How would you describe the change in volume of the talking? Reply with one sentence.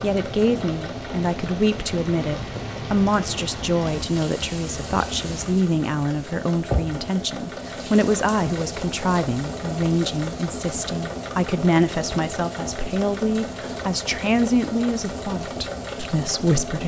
The volume of the talking stays about the same.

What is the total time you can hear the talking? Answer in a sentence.
You can hear the talking for 17 seconds altogether.